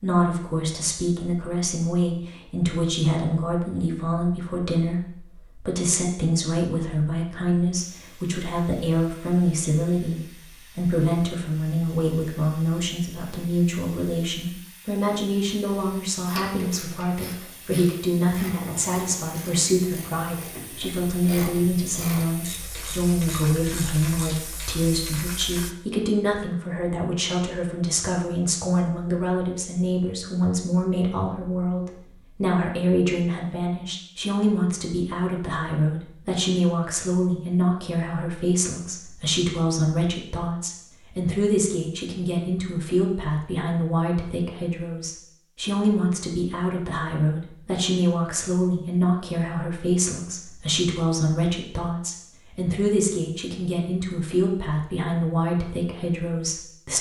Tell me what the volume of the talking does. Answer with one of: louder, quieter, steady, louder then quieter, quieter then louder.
steady.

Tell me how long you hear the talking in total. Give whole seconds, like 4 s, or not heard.
57 s.